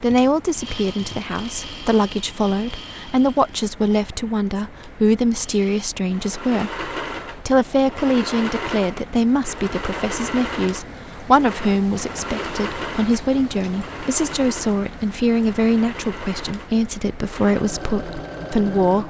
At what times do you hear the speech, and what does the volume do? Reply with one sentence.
You can hear the speech from 0.0 to 19.0 s, at a steady volume.